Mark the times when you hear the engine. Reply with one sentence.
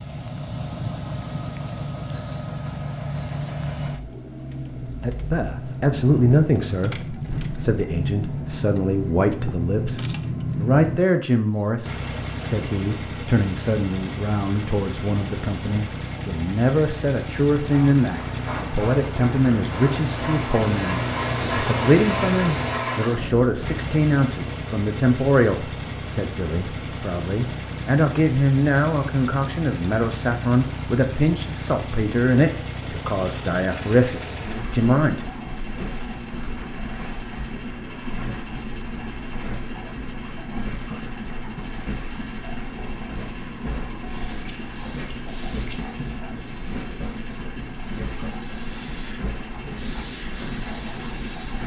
You can hear the engine from 0.0 to 51.6 s.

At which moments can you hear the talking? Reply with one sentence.
You can hear the talking from 5.0 to 35.2 s.